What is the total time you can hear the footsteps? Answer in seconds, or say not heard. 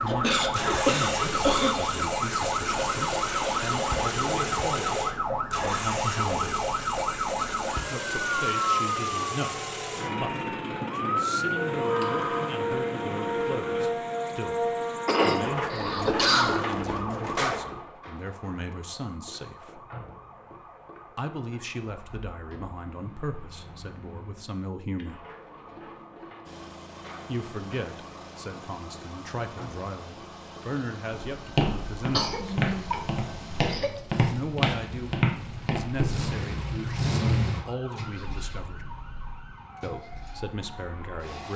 5 s.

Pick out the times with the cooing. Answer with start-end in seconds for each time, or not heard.
not heard.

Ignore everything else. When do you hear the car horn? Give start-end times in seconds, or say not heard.
not heard.